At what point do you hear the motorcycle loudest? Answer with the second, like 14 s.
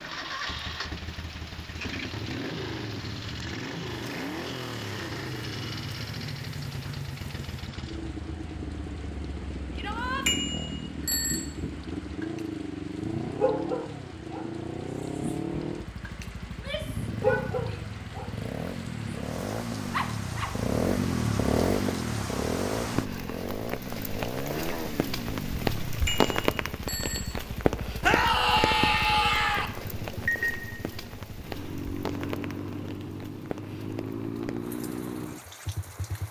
21 s.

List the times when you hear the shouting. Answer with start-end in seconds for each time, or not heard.
9.8-10.2, 16.4-17.9, 28.0-29.7.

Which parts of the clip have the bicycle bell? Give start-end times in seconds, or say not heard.
10.2-11.4, 26.1-27.2.